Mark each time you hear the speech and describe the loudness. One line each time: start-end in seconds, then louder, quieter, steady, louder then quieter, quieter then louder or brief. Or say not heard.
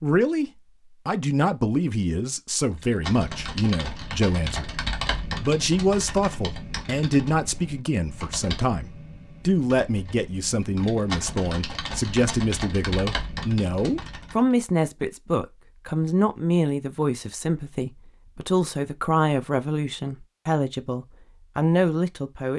0.0-22.5 steady.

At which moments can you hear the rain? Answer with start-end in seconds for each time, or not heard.
not heard.